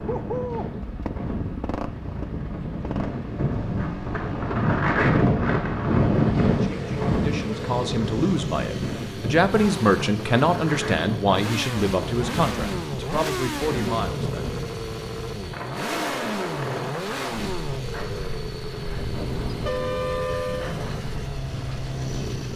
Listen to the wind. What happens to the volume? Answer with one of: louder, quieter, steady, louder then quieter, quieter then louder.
louder then quieter.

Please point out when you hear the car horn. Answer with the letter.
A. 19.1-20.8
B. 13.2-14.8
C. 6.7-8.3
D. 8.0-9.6
A.